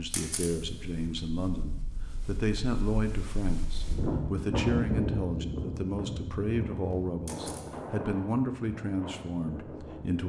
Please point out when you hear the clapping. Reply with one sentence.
You can't hear the clapping here.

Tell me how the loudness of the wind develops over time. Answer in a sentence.
The volume of the wind goes up, then down.